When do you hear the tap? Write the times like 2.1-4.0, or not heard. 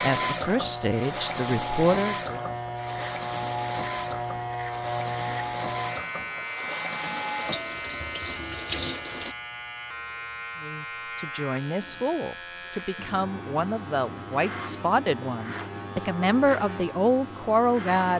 0.0-9.3.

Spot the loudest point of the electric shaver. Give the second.
5 s.